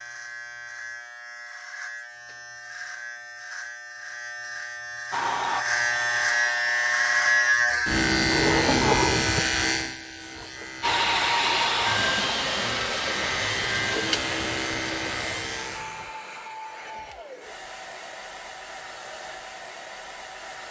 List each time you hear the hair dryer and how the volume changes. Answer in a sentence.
You can hear the hair dryer briefly from 5.1 to 7.5 s; and from 10.8 to 20.6 s, getting quieter.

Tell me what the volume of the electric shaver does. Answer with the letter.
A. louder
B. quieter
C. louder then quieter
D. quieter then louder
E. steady
C.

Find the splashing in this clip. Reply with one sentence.
The splashing can't be heard in this clip.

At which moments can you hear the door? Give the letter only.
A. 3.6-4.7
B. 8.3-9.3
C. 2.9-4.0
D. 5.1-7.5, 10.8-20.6
B.